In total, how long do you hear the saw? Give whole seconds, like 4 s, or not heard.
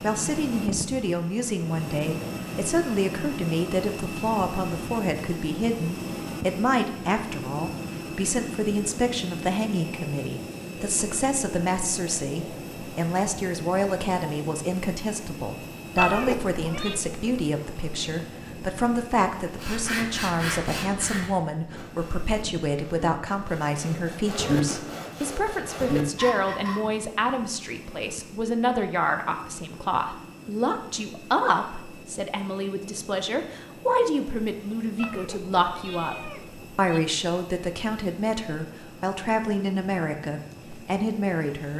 7 s.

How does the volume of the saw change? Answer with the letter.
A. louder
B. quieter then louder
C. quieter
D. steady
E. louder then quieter
B.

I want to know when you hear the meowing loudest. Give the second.
16 s.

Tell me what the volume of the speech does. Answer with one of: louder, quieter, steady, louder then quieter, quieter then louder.
steady.